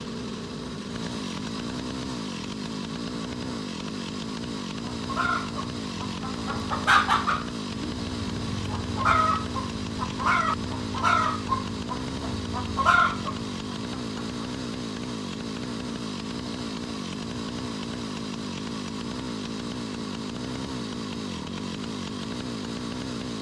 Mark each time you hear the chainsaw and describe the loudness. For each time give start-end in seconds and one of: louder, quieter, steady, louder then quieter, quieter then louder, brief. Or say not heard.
0.0-23.3 steady.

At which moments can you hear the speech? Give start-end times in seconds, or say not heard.
not heard.